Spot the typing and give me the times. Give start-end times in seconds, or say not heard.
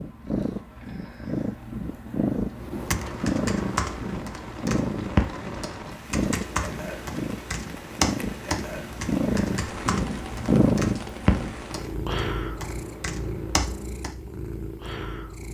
2.8-14.2.